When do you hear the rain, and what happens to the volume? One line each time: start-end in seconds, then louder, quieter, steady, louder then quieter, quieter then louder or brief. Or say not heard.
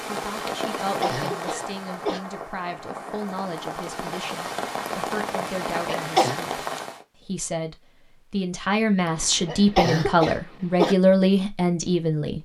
0.0-7.0 quieter then louder.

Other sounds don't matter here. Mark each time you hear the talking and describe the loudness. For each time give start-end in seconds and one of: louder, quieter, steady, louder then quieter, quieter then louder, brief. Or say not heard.
0.1-12.3 louder.